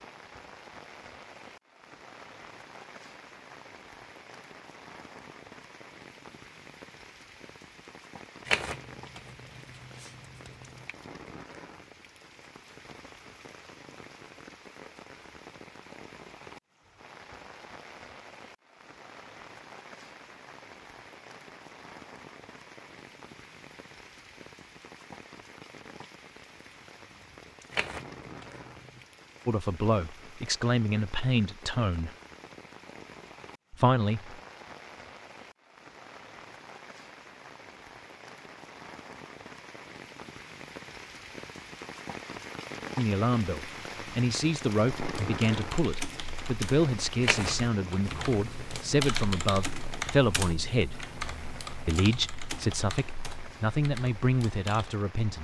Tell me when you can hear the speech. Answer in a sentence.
You can hear the speech from 29.4 to 32.1 s, from 33.7 to 34.4 s, from 43.0 to 51.0 s and from 51.9 to 55.3 s.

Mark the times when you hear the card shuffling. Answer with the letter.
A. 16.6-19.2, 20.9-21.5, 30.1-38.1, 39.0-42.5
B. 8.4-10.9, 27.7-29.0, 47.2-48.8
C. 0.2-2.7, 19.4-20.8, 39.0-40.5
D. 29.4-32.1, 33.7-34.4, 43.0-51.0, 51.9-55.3
B.